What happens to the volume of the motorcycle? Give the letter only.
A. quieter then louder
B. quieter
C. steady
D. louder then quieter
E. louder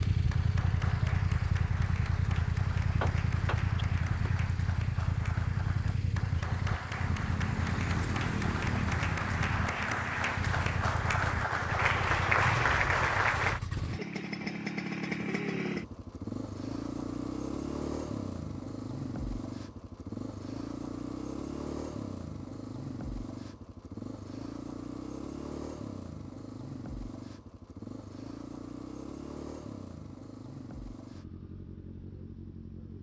B.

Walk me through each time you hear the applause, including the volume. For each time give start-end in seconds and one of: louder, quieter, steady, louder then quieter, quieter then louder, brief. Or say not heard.
0.0-13.6 louder.